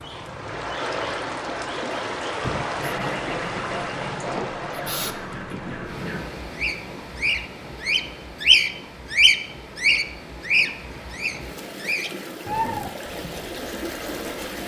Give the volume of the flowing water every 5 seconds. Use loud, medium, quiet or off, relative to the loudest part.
loud, medium, medium.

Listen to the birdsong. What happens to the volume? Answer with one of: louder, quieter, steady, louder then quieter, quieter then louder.
louder then quieter.